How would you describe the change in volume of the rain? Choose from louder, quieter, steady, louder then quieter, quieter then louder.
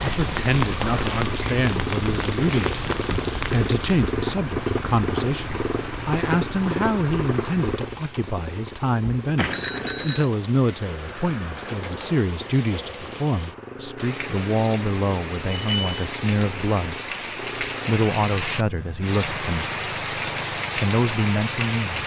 quieter then louder.